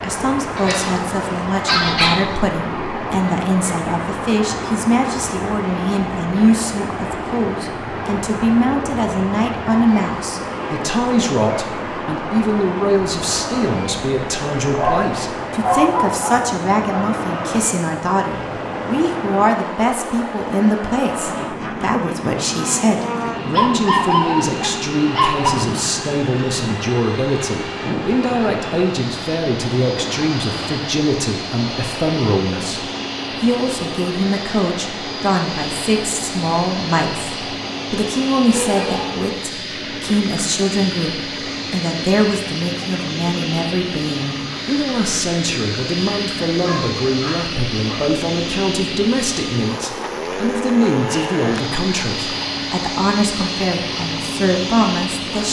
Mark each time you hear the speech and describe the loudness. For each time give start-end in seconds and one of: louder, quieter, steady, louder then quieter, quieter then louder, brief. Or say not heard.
0.0-55.4 steady.